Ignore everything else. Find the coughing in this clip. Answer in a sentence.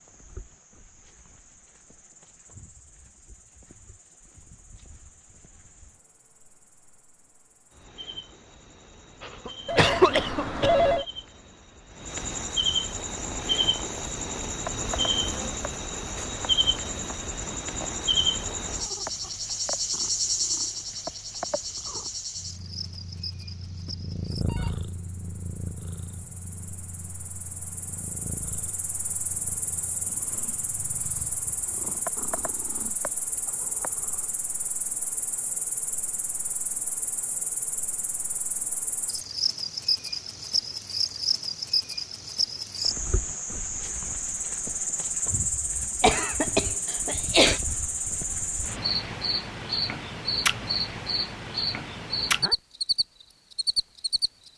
The coughing can be heard from 9.2 to 10.8 s and from 46.0 to 47.6 s.